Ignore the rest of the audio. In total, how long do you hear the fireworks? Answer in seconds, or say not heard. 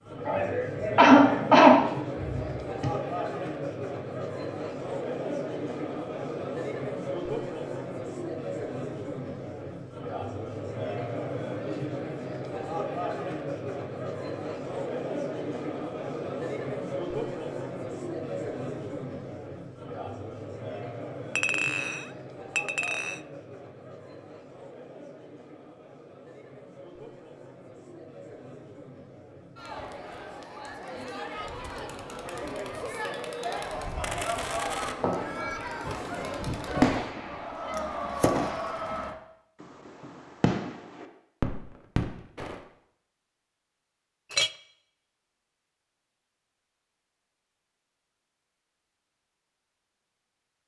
9 s.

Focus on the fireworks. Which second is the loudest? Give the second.
37 s.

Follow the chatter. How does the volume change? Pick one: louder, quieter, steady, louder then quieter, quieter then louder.
quieter then louder.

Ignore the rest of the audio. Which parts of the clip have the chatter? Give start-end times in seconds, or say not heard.
0.0-39.1.